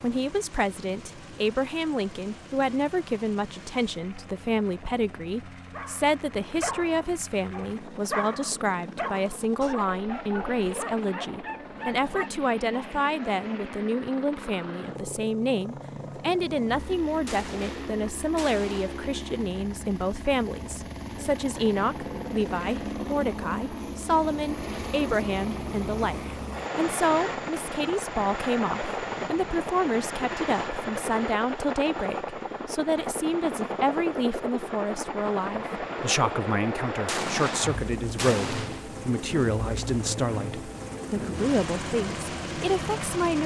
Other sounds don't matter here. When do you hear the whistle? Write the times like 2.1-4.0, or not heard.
not heard.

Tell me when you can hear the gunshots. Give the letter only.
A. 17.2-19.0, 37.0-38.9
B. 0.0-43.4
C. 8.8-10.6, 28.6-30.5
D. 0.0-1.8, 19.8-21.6
A.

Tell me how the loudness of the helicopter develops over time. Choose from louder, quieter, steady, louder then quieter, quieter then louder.
louder.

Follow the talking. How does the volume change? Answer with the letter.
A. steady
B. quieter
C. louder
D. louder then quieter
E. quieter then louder
A.